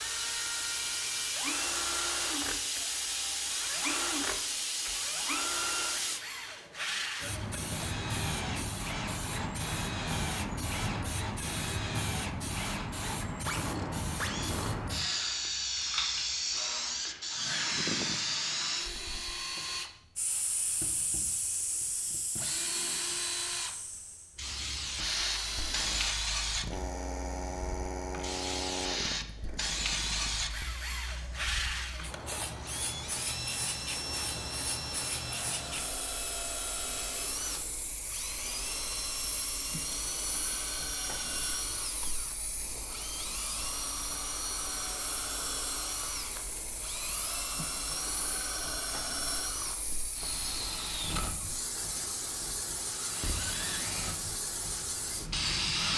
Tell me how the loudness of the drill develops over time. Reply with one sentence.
The loudness of the drill stays about the same.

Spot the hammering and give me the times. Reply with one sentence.
You can't hear the hammering here.